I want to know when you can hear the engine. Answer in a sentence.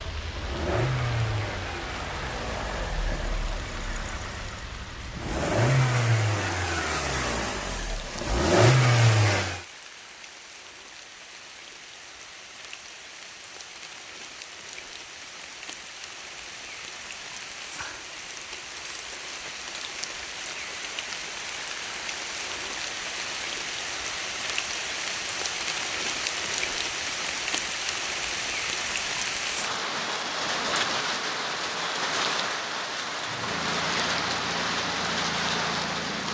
You can hear the engine from 0.0 to 9.7 s and from 33.2 to 36.2 s.